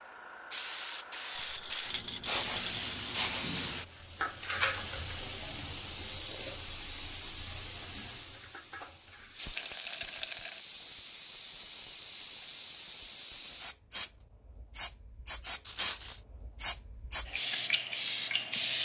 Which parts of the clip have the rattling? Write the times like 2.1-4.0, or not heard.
1.4-2.8, 9.6-10.6, 15.7-16.2.